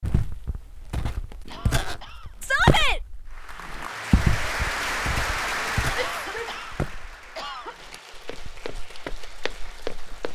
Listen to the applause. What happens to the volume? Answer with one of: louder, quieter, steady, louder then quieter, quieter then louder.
quieter.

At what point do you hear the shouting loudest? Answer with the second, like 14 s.
3 s.